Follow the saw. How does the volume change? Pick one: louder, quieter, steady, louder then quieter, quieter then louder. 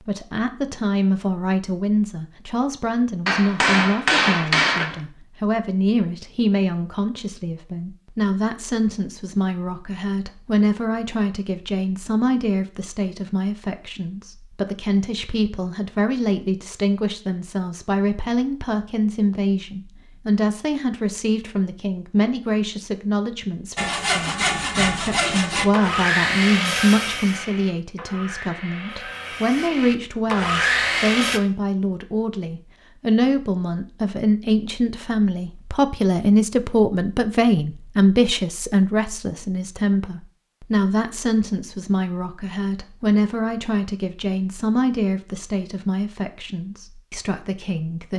quieter then louder.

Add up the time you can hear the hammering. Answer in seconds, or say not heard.
2 s.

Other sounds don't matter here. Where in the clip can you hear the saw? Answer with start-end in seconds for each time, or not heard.
23.8-31.4.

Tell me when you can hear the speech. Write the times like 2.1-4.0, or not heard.
0.0-48.1.